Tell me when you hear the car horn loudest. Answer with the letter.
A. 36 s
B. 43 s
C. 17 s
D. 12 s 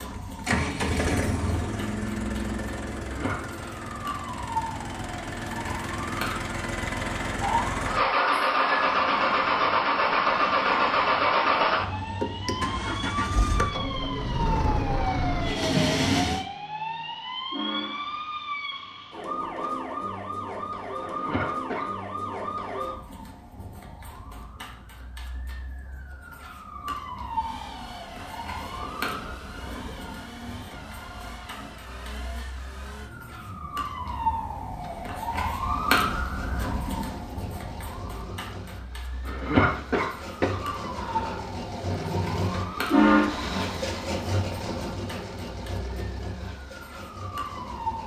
B.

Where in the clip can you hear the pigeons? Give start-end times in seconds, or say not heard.
not heard.